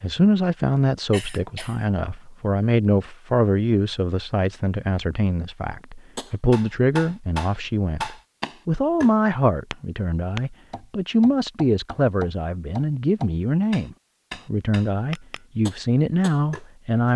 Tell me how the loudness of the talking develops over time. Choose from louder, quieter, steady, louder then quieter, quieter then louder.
steady.